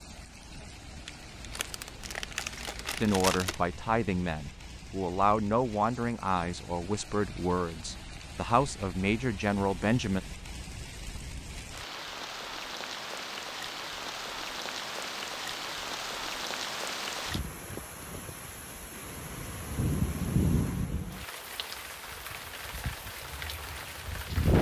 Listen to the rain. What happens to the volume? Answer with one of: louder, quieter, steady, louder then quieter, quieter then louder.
louder.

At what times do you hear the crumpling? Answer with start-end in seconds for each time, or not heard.
1.1-3.6.